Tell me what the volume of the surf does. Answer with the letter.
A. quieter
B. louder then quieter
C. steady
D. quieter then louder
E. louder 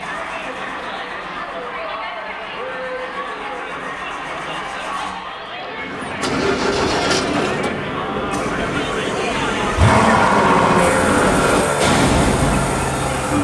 E.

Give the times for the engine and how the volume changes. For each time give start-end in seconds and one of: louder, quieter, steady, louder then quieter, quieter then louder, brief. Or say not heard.
0.0-13.3 louder.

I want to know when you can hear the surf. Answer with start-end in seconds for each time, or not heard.
6.2-13.3.